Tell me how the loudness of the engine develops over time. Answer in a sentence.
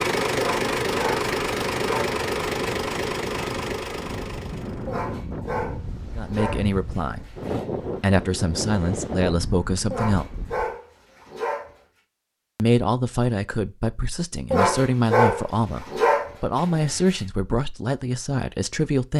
The volume of the engine goes down.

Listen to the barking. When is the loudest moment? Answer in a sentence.
The loudest moment of the barking is at 15 seconds.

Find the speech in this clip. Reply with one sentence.
The speech can be heard from 6.2 to 7.3 s, from 8.0 to 10.2 s and from 12.6 to 19.1 s.